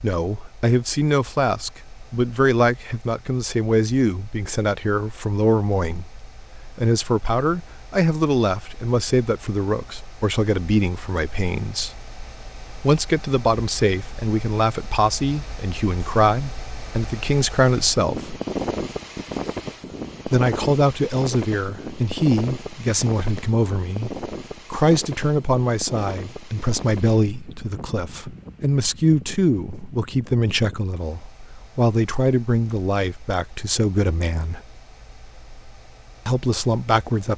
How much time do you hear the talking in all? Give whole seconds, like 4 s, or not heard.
33 s.